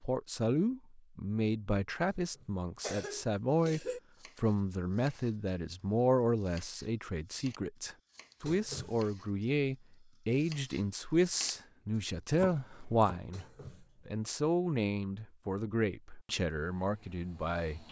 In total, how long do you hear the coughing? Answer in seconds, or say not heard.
3 s.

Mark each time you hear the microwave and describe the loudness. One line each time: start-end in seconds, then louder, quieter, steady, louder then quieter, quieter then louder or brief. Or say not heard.
not heard.